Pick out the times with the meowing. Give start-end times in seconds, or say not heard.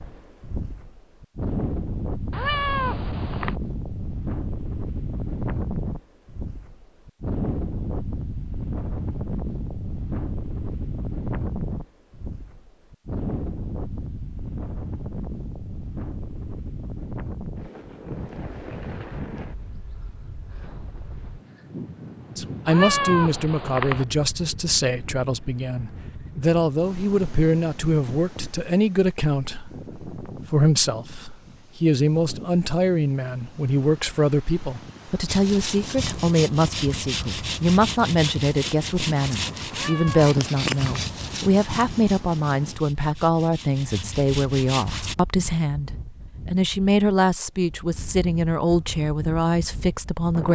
2.3-3.5, 22.6-24.1, 39.7-41.1.